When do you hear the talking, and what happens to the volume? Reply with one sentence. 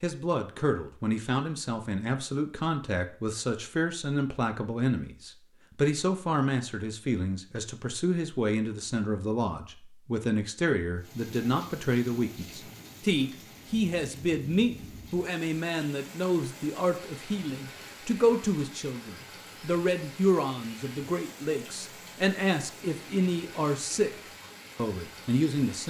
The talking can be heard from 0.0 to 24.1 s, at a steady volume; and briefly from 24.8 to 25.8 s.